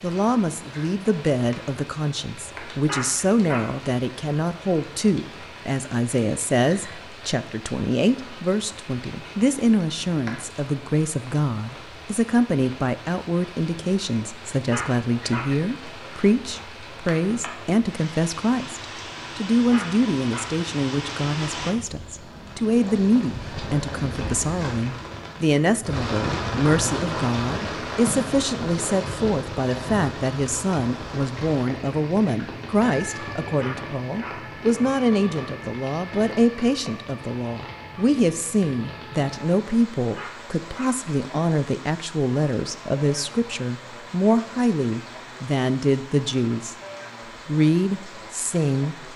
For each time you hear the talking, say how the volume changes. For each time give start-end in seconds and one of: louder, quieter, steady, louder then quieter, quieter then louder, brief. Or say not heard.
0.0-46.8 steady
47.5-49.1 brief.